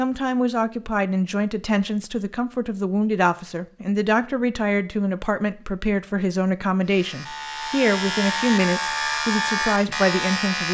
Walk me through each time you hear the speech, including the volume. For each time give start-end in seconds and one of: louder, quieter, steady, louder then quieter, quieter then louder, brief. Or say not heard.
0.0-10.6 steady.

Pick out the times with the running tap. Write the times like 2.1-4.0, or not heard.
not heard.